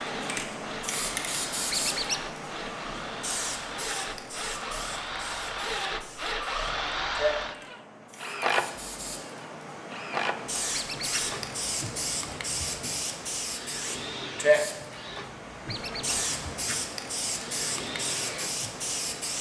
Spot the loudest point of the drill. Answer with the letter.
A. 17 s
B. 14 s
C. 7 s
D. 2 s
C.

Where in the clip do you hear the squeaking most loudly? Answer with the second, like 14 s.
2 s.